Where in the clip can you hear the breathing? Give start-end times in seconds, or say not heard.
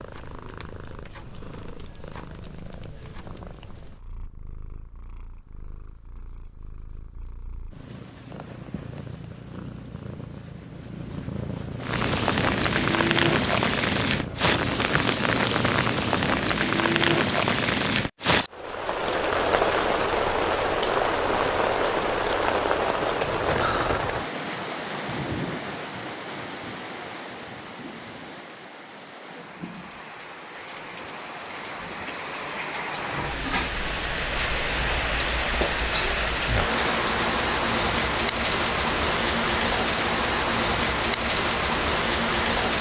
not heard.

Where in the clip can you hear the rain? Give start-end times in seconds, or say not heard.
11.8-42.7.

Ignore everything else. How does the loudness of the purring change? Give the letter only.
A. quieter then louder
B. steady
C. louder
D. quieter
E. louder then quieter
A.